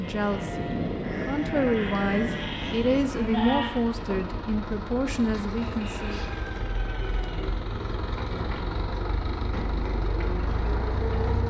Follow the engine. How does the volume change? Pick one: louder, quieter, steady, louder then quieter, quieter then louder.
louder.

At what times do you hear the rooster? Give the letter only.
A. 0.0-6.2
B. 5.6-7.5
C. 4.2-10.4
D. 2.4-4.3
B.